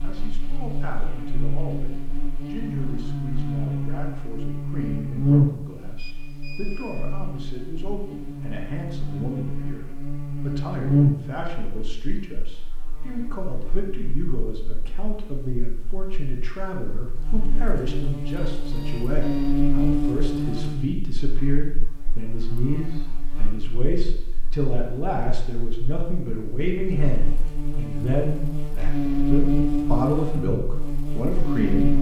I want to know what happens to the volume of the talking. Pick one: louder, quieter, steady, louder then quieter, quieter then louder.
louder.